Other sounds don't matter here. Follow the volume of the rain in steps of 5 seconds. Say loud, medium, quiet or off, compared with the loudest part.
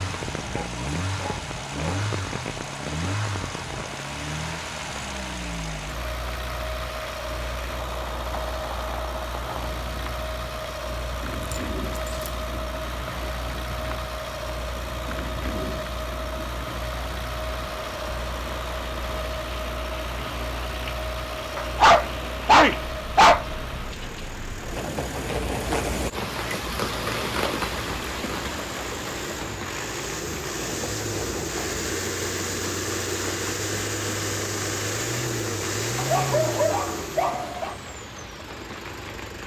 medium, medium, medium, medium, medium, loud, medium, medium.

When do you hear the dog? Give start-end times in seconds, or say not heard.
0.5-2.0, 11.5-12.3, 21.6-23.4, 36.0-37.8.